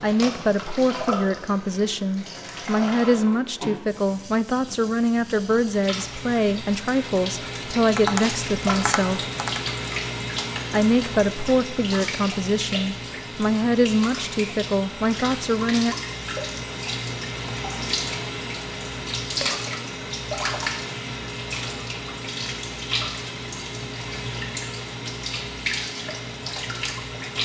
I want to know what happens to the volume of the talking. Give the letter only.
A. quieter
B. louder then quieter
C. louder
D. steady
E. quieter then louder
D.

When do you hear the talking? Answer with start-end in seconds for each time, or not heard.
0.0-9.3, 10.7-15.9.